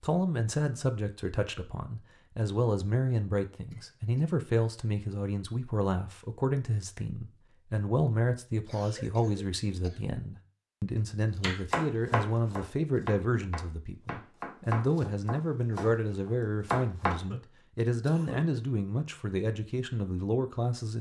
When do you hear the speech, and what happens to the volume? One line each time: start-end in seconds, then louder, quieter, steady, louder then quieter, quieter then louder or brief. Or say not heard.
0.0-20.9 steady.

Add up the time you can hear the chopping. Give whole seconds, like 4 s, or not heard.
6 s.